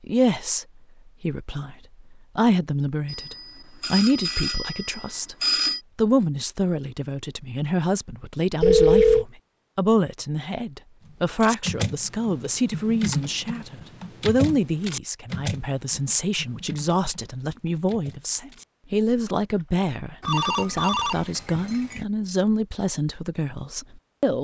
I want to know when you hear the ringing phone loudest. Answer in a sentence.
The volume of the ringing phone peaks at 9 seconds.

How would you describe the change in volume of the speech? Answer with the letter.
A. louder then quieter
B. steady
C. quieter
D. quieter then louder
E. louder
B.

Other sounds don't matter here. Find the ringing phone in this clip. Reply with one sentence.
You can hear the ringing phone from 3.1 to 5.8 s, from 8.6 to 9.2 s and from 20.2 to 22.1 s.